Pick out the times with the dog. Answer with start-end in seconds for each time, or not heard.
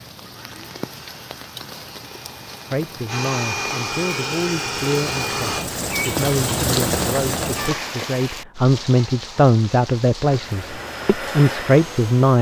not heard.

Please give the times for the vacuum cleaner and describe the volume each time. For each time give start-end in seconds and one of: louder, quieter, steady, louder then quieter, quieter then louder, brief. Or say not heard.
0.2-5.7 louder
10.2-12.3 brief.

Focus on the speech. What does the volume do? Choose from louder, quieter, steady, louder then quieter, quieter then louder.
louder.